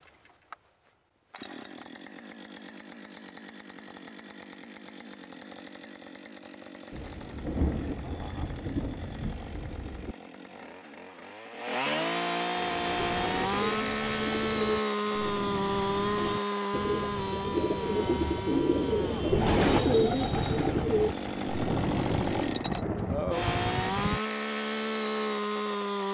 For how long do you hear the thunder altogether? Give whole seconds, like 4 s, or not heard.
7 s.